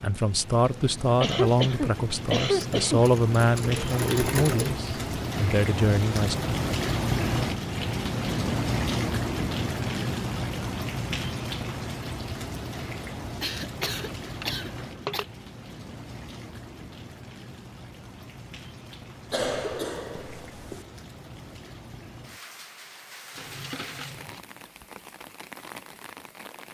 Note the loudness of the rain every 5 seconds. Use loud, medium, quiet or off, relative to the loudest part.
medium, loud, medium, quiet, quiet, quiet.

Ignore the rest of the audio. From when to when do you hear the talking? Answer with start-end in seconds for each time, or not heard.
0.0-6.3.